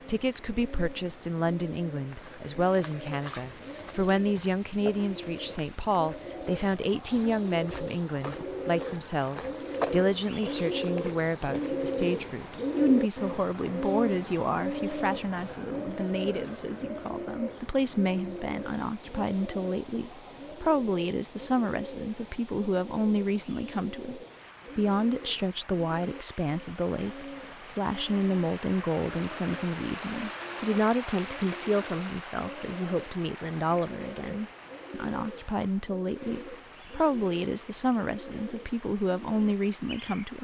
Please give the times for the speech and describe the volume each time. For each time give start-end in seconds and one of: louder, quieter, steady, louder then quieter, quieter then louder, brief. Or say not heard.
0.1-40.3 steady.